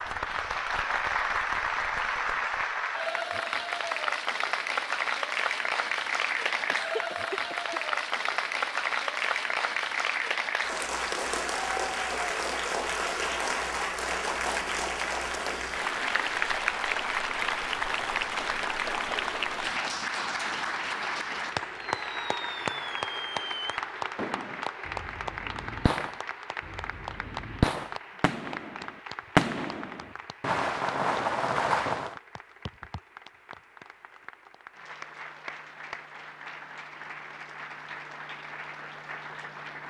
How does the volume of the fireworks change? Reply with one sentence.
The volume of the fireworks goes up.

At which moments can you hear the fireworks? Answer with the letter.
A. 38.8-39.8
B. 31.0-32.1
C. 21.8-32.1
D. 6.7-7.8
C.